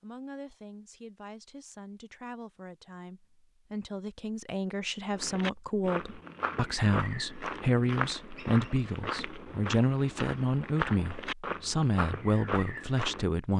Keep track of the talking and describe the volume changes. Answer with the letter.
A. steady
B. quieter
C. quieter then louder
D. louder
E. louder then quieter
D.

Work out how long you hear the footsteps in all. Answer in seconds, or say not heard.
8 s.